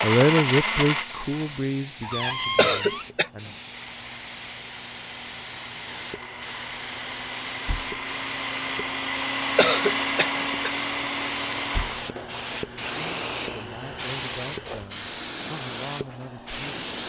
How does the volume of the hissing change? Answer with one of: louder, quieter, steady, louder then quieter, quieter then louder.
louder.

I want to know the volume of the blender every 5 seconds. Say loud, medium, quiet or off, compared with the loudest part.
loud, loud, loud, off.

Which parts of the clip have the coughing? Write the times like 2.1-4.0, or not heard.
2.5-3.3, 9.6-10.7.